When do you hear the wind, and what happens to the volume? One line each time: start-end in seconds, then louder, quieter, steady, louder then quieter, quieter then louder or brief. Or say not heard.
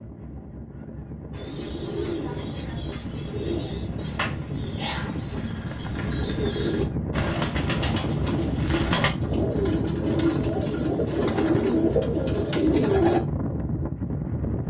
0.0-14.6 louder.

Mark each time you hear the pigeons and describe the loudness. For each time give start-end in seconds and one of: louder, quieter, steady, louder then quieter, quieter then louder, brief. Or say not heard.
1.3-13.2 louder.